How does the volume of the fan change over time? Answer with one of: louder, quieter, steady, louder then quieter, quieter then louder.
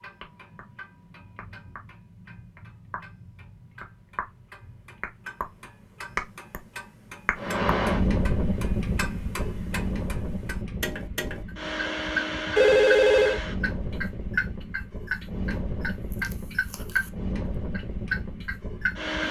quieter.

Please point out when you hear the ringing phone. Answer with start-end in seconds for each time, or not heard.
12.6-13.4.